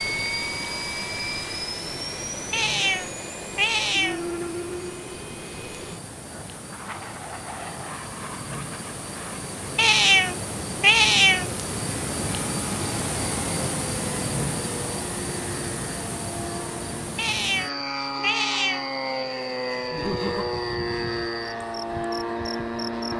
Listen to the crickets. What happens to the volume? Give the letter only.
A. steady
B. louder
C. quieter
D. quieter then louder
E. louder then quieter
E.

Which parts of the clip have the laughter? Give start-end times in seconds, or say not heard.
19.9-20.5.